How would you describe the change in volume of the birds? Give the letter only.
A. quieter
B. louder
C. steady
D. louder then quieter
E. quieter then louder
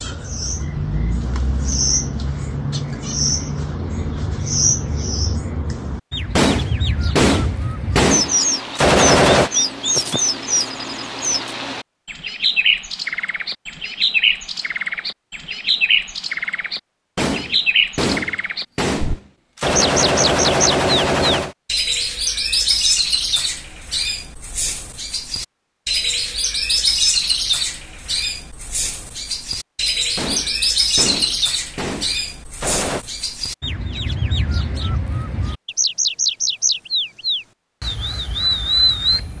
C.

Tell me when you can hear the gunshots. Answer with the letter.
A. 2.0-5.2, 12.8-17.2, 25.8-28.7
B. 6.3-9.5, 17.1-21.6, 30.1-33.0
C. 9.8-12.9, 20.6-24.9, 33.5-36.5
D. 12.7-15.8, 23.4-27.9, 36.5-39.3
B.